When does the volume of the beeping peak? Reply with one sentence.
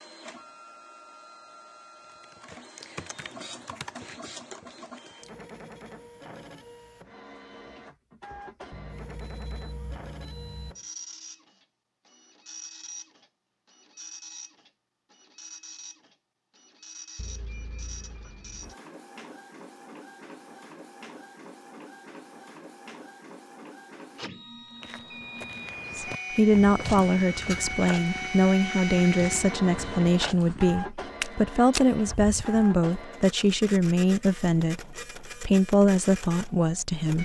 The loudest moment of the beeping is at 26 seconds.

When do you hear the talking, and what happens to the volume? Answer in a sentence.
You can hear the talking from 25.9 to 37.2 s, at a steady volume.